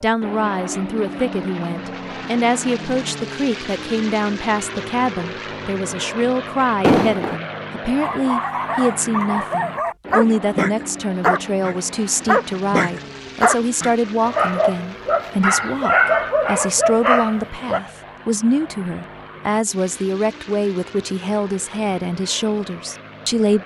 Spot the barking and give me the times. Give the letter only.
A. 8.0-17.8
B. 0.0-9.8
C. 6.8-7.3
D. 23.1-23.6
A.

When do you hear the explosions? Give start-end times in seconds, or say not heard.
6.8-7.3.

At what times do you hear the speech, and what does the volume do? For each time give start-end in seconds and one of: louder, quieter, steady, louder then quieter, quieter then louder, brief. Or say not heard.
0.0-23.6 steady.